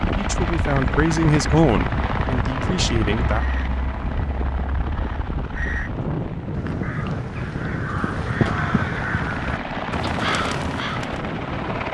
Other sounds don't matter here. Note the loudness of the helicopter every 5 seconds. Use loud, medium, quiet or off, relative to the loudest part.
loud, medium, loud.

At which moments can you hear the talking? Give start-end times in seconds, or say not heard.
0.1-3.5.